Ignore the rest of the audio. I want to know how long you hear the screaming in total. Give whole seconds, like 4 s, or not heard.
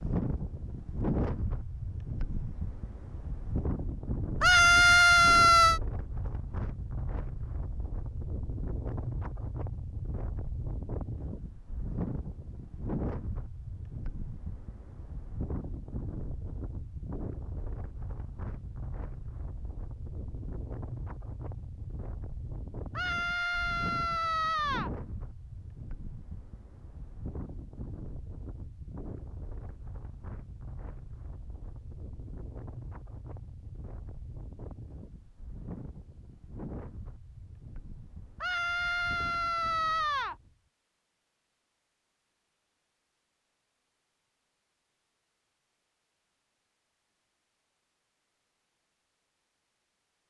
5 s.